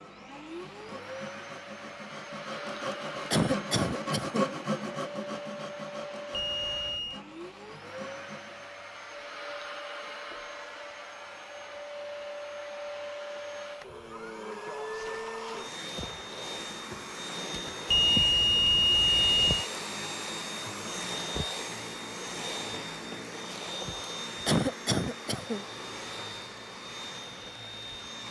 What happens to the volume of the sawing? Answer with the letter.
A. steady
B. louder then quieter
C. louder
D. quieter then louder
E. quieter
B.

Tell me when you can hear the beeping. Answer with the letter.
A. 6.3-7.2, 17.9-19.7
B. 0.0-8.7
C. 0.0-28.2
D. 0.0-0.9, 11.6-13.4
A.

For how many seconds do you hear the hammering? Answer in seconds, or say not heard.
not heard.